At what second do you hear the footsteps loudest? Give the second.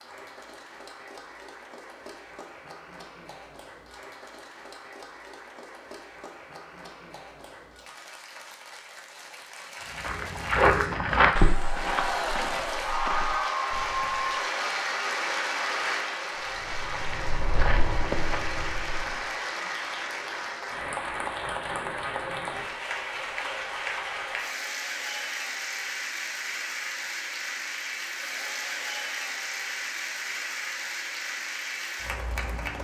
11 s.